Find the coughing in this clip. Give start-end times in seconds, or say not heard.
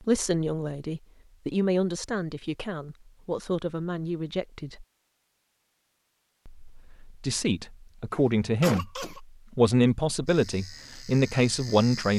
8.1-9.2.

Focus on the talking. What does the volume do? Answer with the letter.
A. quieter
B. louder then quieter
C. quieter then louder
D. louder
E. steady
C.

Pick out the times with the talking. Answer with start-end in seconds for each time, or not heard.
0.0-4.8, 6.5-12.1.